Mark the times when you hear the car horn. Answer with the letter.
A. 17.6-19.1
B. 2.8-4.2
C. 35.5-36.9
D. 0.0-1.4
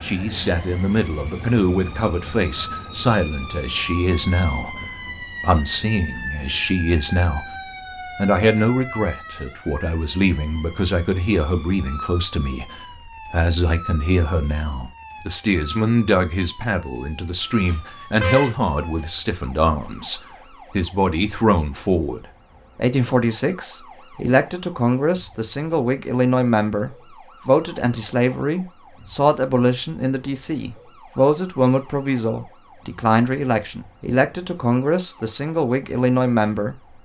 A.